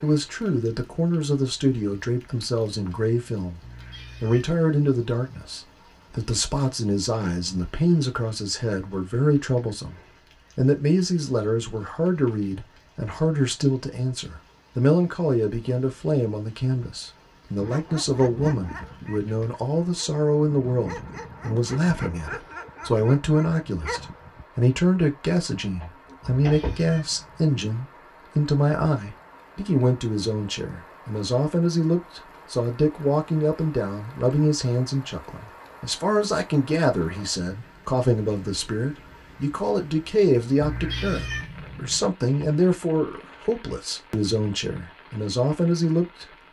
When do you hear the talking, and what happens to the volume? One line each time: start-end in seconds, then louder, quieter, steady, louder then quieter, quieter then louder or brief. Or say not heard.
0.0-46.4 steady.